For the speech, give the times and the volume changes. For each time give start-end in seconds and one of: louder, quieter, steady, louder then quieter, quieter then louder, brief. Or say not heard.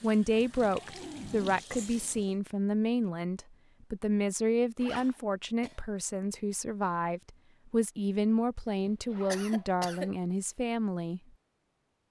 0.0-11.2 steady.